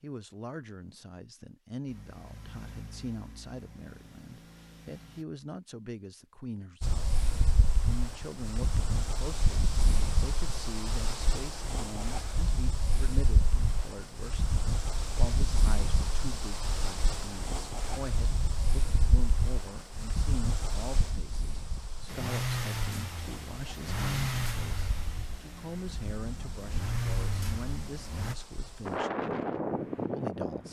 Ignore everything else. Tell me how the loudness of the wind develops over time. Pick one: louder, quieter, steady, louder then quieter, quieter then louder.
quieter then louder.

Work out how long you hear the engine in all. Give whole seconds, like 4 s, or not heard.
10 s.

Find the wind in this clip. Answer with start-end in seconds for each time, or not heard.
6.8-30.6.